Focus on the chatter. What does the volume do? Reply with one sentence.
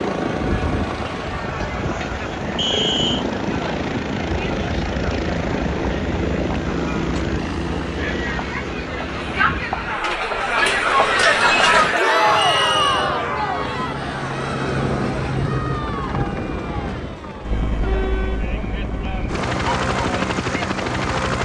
The loudness of the chatter goes up, then down.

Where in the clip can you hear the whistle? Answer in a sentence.
The whistle can be heard from 2.5 to 3.2 s and from 12.3 to 13.1 s.